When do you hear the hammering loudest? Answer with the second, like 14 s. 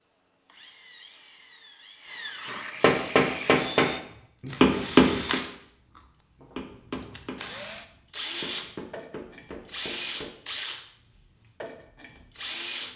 5 s.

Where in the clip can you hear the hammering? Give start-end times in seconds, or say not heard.
2.8-10.3.